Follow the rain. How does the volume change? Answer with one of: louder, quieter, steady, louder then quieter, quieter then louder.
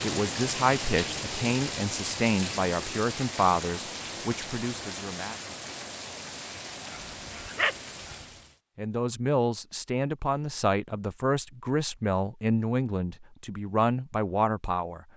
quieter.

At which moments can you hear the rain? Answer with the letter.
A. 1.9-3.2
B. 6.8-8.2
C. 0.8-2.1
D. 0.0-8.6
D.